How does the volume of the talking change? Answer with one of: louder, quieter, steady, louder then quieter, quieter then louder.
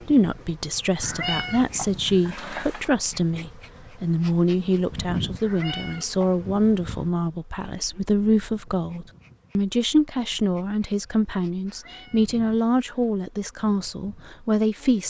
steady.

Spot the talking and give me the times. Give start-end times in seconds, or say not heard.
0.1-15.0.